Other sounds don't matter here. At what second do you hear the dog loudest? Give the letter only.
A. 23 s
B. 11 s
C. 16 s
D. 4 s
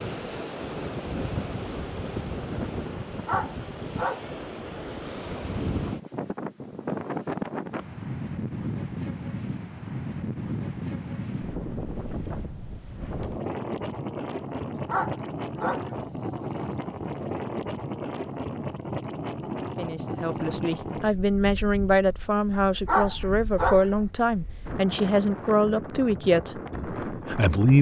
A.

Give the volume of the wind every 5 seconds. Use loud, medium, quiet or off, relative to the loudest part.
loud, loud, loud, loud, medium, loud.